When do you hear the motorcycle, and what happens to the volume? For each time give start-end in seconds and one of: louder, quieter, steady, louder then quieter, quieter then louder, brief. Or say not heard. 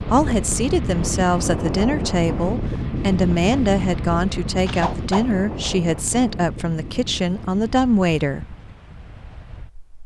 not heard.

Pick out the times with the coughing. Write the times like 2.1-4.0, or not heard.
4.7-5.3.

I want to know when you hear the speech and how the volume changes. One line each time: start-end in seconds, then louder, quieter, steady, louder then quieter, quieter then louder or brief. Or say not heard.
0.1-8.6 steady.